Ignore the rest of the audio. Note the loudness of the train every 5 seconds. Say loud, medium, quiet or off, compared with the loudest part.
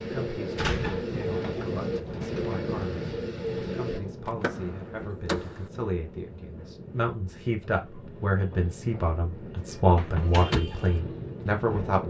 loud, medium, loud.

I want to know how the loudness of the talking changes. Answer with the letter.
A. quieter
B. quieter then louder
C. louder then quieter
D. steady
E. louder
E.